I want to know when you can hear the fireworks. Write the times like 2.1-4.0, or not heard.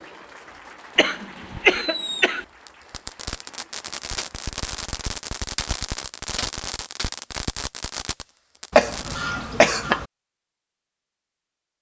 1.7-9.2.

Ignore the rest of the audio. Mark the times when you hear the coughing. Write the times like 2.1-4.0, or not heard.
0.9-2.4, 8.7-10.1.